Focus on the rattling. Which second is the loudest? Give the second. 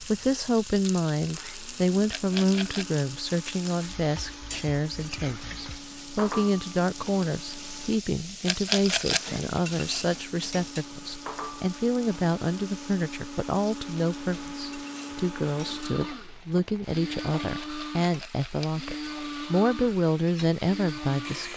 9 s.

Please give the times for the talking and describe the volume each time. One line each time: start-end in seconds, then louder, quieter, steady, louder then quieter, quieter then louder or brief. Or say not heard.
0.0-21.5 steady.